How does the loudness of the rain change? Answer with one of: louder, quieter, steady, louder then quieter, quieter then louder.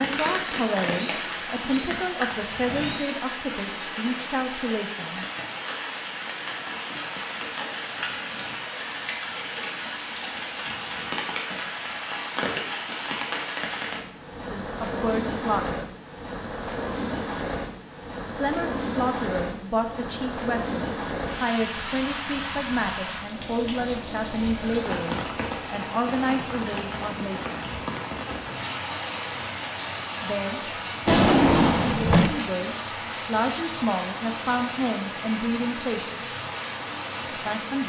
steady.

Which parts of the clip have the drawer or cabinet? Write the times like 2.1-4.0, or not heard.
1.5-3.0, 31.1-32.4.